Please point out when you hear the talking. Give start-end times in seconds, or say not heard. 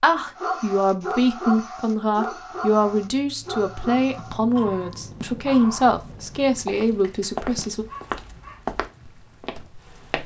0.0-7.8.